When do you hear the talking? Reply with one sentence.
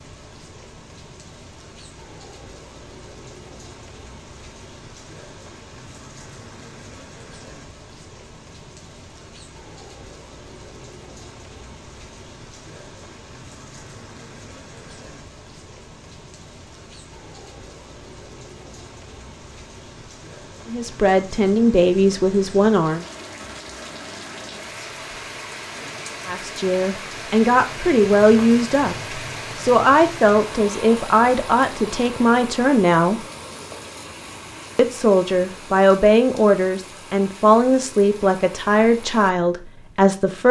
You can hear the talking from 20.6 to 23.1 s, from 26.2 to 33.2 s and from 34.8 to 40.4 s.